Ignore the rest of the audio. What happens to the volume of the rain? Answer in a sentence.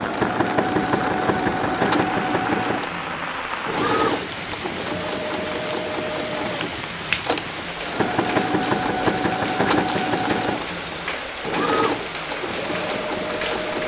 The loudness of the rain stays about the same.